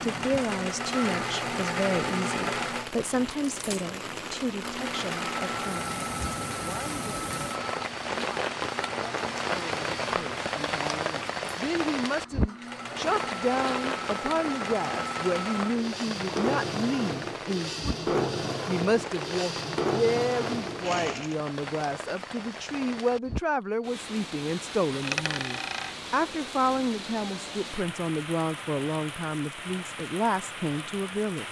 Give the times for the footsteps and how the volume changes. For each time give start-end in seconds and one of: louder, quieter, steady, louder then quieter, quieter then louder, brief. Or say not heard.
not heard.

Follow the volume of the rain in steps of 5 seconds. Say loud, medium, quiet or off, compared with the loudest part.
medium, loud, loud, medium, medium, medium, medium.